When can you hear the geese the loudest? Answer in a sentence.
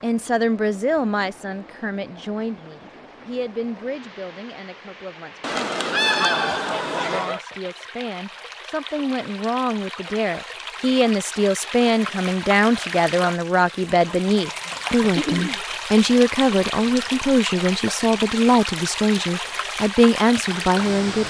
The loudest moment of the geese is at 6 seconds.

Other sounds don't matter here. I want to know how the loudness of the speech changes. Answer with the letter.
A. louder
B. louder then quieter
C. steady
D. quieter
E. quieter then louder
E.